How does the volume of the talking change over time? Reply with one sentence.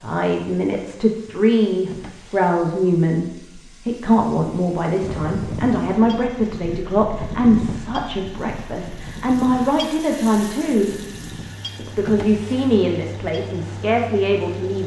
The loudness of the talking stays about the same.